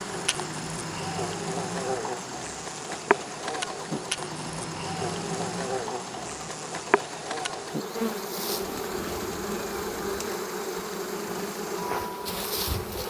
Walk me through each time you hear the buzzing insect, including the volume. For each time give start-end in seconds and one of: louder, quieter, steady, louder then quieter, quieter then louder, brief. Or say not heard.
0.0-13.0 steady.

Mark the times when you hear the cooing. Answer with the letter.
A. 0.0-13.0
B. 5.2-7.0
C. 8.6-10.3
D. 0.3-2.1
C.